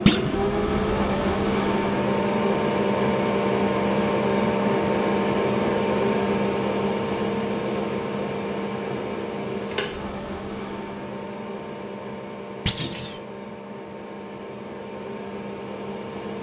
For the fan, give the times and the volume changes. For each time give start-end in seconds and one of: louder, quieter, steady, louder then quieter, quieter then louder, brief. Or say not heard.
0.0-16.3 quieter.